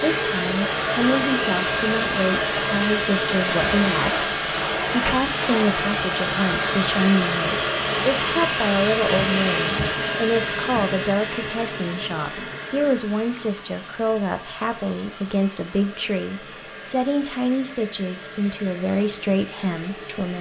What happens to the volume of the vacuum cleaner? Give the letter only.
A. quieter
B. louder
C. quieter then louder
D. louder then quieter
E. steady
A.